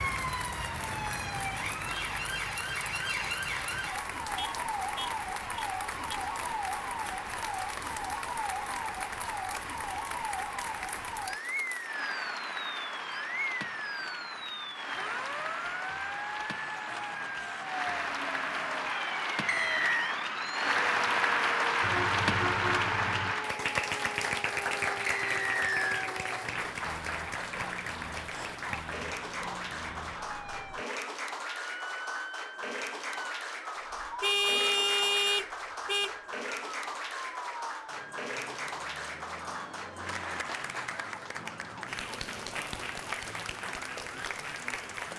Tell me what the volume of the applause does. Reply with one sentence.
The loudness of the applause goes up, then down.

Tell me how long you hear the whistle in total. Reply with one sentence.
The whistle can be heard for 2 seconds in total.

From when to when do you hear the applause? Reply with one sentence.
The applause can be heard from 0.0 to 45.1 s.